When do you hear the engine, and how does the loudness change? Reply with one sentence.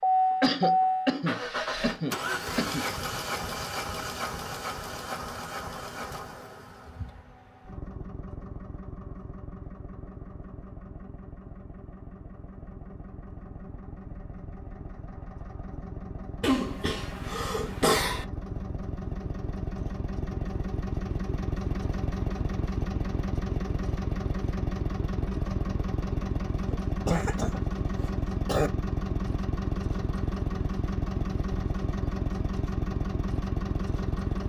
The engine can be heard from 0.0 to 34.4 s, getting quieter then louder.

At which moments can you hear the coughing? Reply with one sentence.
The coughing can be heard from 0.4 to 2.9 s, from 16.4 to 18.2 s and from 26.7 to 28.7 s.